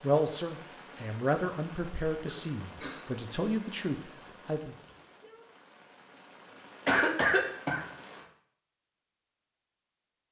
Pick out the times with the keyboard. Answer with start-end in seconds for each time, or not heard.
not heard.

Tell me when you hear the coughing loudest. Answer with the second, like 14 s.
7 s.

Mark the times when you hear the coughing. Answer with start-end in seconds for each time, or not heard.
2.2-3.0, 6.8-7.8.